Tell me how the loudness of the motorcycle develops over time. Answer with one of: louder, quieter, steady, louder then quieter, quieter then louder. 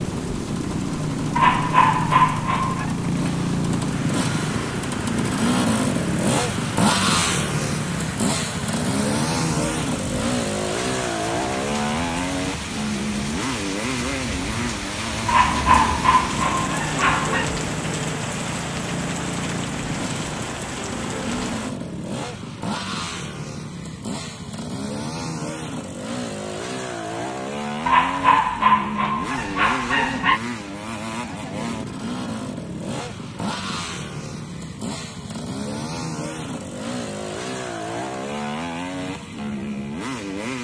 quieter.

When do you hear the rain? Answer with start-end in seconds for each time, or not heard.
0.0-21.7.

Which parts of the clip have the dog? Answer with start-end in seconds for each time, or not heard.
1.4-2.9, 15.2-17.5, 27.9-30.4.